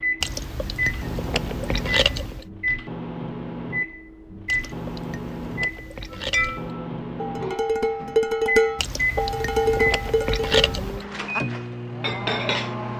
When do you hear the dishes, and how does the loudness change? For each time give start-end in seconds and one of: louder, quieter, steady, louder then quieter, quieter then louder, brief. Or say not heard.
6.2-12.8 louder then quieter.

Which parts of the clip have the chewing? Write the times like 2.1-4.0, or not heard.
0.2-2.5, 4.5-6.8, 8.8-11.1.